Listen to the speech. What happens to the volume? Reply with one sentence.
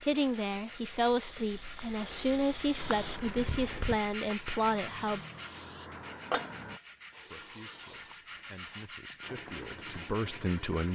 The loudness of the speech goes down, then up.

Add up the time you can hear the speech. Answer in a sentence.
You can hear the speech for 9 seconds altogether.